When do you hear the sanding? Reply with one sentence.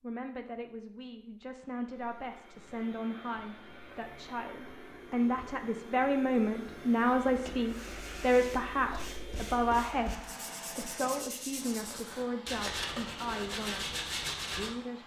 The sanding can be heard from 7.3 to 14.8 s.